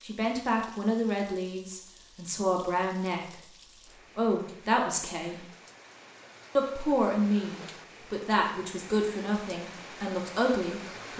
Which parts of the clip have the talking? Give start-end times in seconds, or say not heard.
0.0-3.4, 4.2-5.5, 6.5-11.1.